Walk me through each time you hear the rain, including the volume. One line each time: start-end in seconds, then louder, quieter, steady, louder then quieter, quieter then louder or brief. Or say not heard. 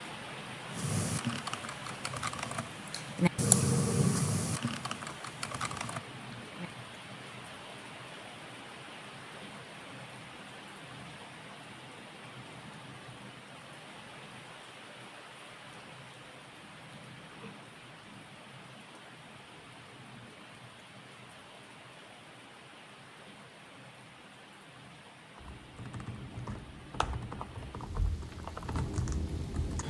0.0-29.8 quieter.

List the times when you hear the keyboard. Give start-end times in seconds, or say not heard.
0.7-6.7, 25.4-29.8.